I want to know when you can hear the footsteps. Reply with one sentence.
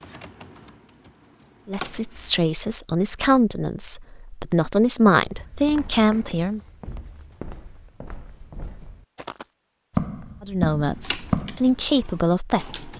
You can hear the footsteps from 5.2 to 11.8 s.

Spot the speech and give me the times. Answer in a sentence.
The speech can be heard from 1.6 to 6.6 s and from 10.4 to 12.9 s.